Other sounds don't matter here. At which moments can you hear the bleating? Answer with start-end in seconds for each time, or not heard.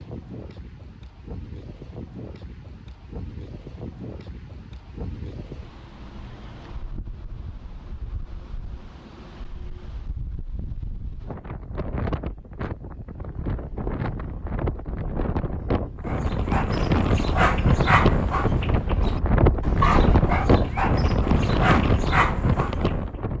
not heard.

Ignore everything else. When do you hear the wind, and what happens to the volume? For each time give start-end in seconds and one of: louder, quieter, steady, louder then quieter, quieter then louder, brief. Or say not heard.
0.0-23.3 louder.